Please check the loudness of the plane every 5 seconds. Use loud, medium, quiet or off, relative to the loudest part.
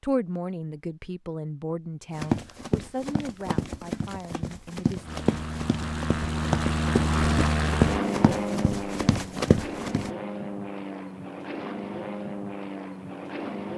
off, loud, medium.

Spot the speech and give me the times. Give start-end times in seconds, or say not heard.
0.0-5.0.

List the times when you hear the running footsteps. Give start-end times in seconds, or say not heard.
2.1-10.1.